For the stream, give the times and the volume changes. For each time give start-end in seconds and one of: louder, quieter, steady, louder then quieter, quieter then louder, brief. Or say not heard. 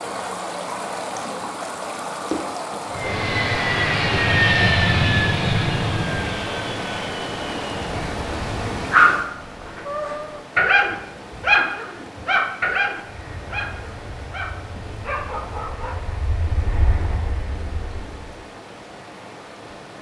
0.0-19.9 quieter.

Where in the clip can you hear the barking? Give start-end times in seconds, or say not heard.
8.9-16.2.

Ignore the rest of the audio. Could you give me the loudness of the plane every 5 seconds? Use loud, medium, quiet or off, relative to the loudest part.
loud, medium, quiet, quiet.